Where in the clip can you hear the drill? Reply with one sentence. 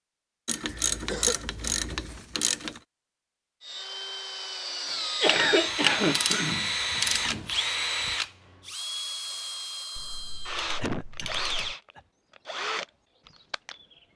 The drill can be heard from 3.6 to 14.1 s.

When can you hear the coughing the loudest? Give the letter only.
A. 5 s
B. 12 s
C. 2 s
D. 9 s
A.